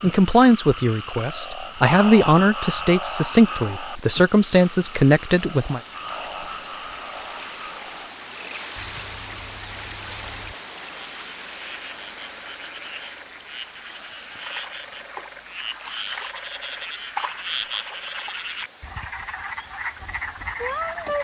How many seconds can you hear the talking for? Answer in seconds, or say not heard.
6 s.